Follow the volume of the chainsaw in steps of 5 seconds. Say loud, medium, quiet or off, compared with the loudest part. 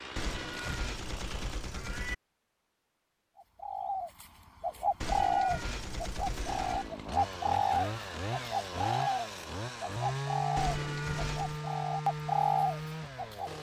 medium, loud, loud.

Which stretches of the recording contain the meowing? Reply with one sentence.
The meowing can be heard from 0.1 to 2.1 s, from 5.0 to 6.9 s and from 10.6 to 11.6 s.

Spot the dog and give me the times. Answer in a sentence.
You can't hear the dog here.